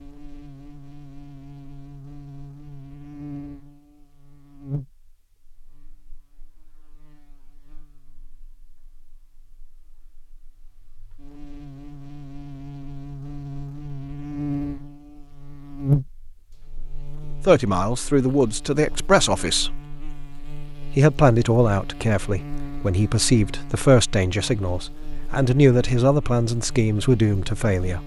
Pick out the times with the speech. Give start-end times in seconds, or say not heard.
17.4-19.8, 20.9-28.0.